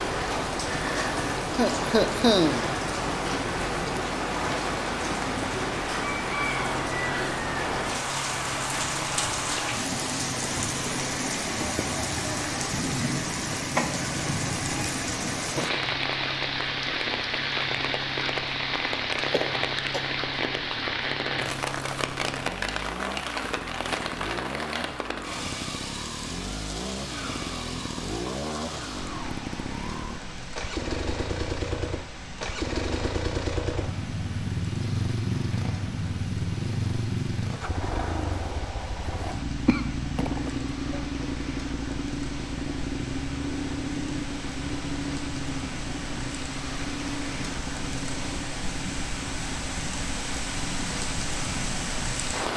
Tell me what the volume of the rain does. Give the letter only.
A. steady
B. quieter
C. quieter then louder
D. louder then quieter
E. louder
C.